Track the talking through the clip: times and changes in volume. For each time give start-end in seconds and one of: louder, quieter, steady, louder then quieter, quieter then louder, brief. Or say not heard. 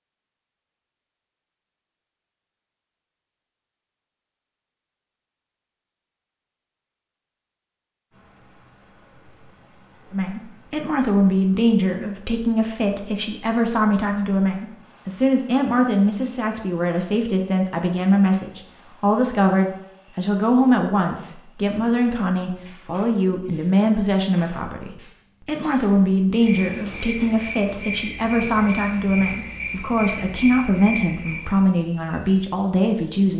10.1-33.3 steady.